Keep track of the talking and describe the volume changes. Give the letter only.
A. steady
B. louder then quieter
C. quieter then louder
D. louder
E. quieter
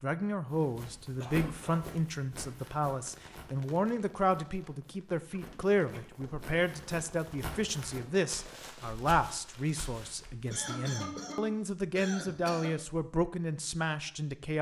A.